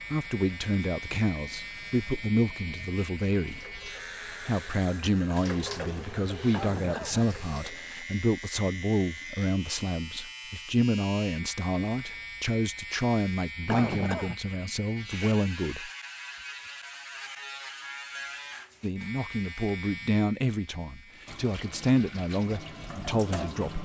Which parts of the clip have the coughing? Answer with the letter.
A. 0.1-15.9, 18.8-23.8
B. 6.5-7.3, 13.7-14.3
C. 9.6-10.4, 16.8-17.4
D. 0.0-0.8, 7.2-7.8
B.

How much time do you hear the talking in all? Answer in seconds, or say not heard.
21 s.